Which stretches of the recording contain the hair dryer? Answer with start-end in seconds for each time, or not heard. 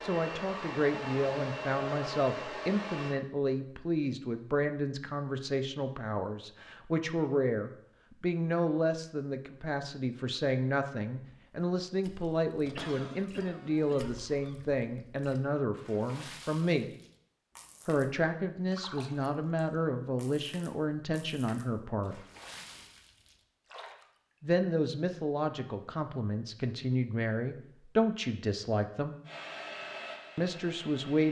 0.0-3.2, 29.2-31.2.